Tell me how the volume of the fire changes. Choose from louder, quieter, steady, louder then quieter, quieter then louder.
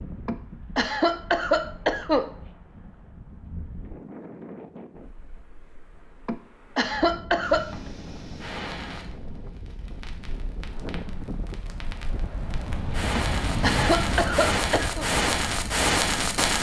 quieter then louder.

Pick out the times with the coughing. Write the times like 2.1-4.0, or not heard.
0.2-2.3, 6.2-7.7, 13.2-15.1.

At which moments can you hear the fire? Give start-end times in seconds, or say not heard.
7.4-16.5.